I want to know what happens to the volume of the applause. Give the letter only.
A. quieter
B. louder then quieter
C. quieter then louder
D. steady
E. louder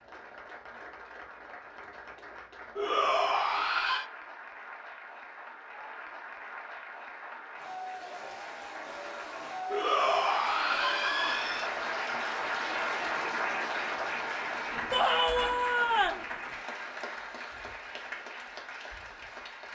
B.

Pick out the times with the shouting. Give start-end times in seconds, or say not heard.
2.8-4.0, 9.7-11.7, 14.9-16.2.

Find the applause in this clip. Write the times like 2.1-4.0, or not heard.
0.0-19.7.